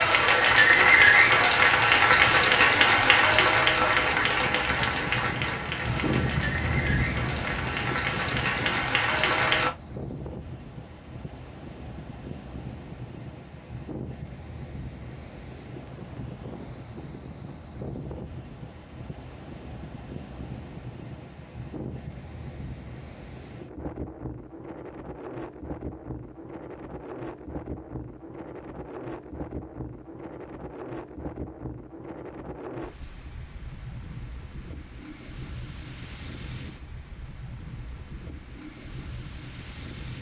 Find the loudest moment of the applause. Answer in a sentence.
The loudest moment of the applause is at 1 second.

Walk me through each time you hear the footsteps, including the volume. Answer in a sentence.
The footsteps can't be heard in this clip.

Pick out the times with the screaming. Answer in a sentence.
You can't hear the screaming here.